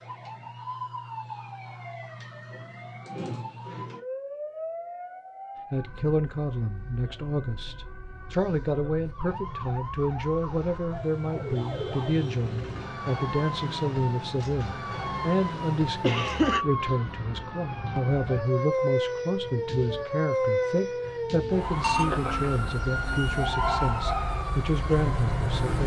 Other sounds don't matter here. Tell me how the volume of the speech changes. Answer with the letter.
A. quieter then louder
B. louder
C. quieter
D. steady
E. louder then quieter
D.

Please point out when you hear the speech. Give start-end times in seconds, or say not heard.
5.7-25.8.